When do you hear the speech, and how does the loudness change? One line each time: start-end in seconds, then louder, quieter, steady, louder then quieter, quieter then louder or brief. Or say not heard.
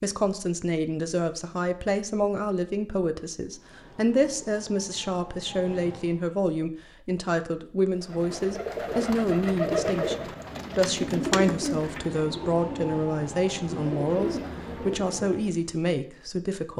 0.0-16.7 steady.